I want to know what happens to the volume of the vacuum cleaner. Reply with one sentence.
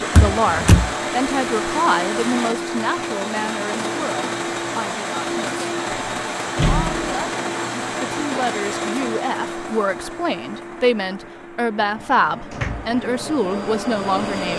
The volume of the vacuum cleaner goes down.